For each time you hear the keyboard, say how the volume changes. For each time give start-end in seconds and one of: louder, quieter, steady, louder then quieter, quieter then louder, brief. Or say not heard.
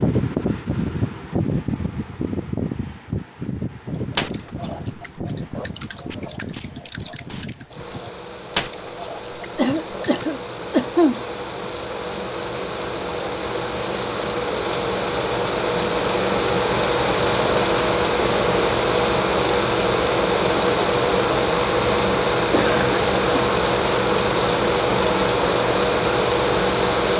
3.9-10.3 louder then quieter.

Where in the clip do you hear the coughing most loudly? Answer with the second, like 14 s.
11 s.